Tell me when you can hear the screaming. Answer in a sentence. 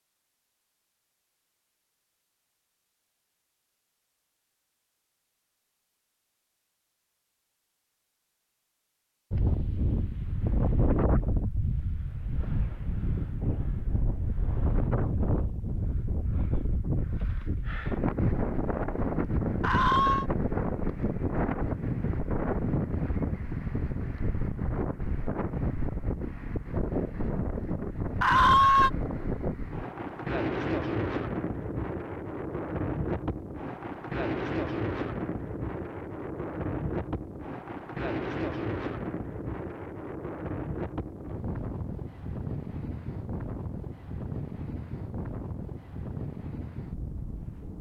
You can hear the screaming from 19.6 to 20.2 s and from 28.2 to 28.9 s.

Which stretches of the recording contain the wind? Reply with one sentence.
The wind can be heard from 9.3 to 47.7 s.